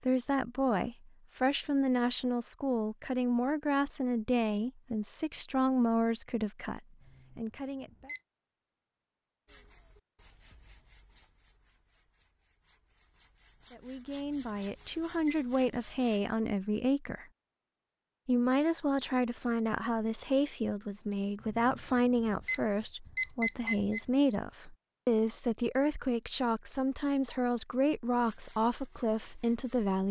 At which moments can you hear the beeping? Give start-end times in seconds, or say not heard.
7.0-8.2, 14.2-15.4, 21.4-24.1.